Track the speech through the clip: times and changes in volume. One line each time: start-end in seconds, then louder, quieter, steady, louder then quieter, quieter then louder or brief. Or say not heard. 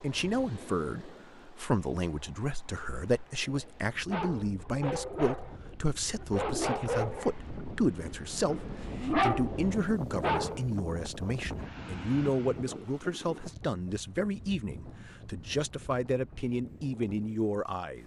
0.0-18.0 steady.